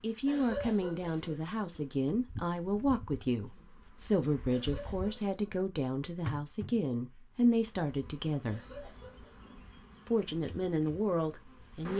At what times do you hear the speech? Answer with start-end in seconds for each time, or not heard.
0.0-8.6, 10.1-11.9.